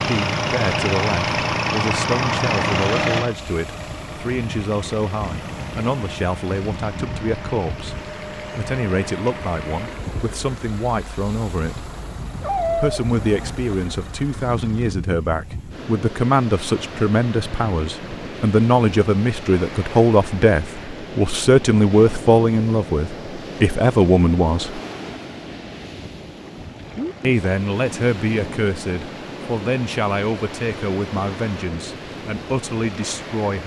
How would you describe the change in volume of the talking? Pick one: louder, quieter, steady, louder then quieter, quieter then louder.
louder then quieter.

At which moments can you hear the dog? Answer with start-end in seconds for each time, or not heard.
12.4-13.6.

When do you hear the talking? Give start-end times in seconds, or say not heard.
0.1-11.9, 12.7-24.8, 27.2-33.6.